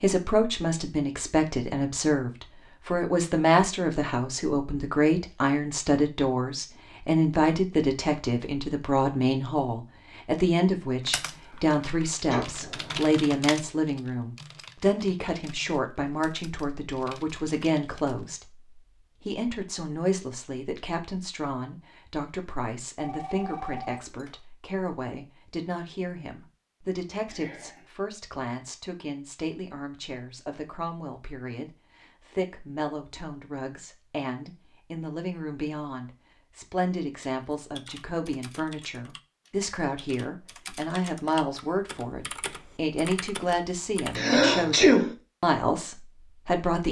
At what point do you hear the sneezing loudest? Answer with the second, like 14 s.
45 s.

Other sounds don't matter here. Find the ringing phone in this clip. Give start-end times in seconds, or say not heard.
22.9-24.4.